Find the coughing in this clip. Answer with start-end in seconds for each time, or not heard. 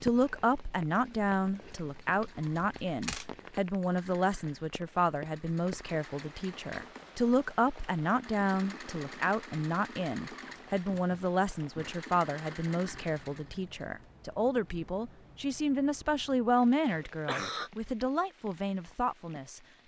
16.9-17.7.